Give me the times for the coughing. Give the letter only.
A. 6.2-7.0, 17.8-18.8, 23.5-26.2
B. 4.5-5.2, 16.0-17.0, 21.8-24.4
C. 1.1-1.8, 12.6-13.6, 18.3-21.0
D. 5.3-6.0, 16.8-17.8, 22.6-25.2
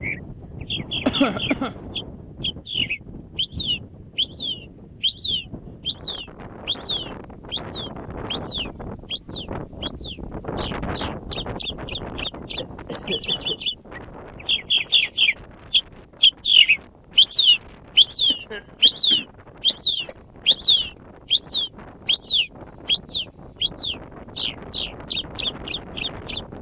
C.